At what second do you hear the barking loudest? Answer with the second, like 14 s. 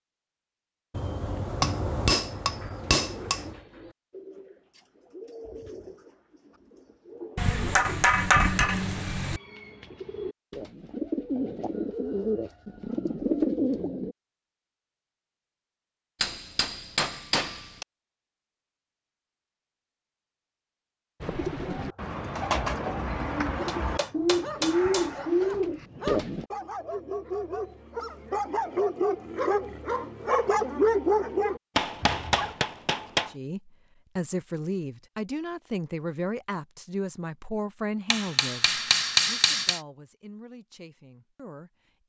31 s.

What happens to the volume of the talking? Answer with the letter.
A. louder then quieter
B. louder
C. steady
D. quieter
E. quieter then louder
D.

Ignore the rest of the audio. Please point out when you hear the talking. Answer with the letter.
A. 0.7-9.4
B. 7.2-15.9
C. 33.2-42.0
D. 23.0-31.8
C.